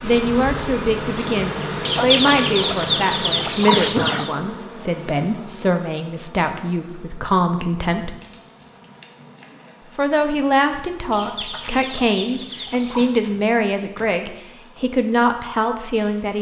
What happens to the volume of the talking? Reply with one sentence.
The loudness of the talking stays about the same.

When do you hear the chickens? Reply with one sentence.
You can hear the chickens from 1.9 to 4.3 s and from 11.1 to 13.2 s.